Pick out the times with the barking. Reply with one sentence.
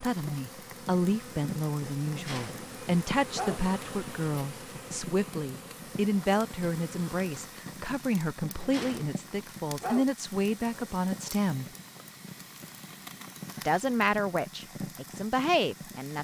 The barking can be heard from 2.0 to 3.6 s and from 8.6 to 10.1 s.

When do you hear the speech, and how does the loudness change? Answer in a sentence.
The speech can be heard from 0.0 to 11.7 s, at a steady volume; and briefly from 13.6 to 16.1 s.